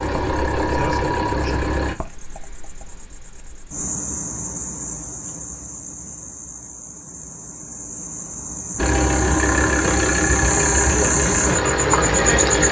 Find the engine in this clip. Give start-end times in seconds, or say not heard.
0.0-1.9, 8.8-12.6.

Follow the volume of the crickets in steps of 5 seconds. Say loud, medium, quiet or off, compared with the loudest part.
quiet, medium, loud.